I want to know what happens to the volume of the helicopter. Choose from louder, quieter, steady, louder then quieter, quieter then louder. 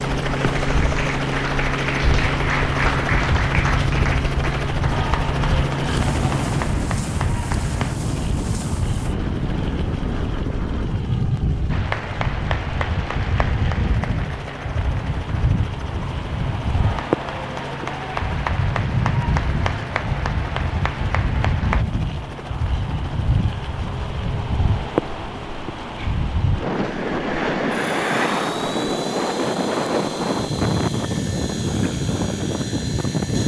quieter.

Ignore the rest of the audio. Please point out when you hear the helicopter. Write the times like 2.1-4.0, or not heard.
0.0-33.4.